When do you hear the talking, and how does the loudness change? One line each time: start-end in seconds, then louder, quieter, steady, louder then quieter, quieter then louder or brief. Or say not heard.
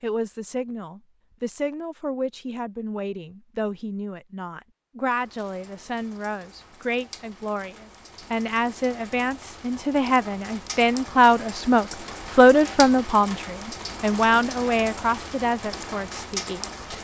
0.0-16.9 louder then quieter.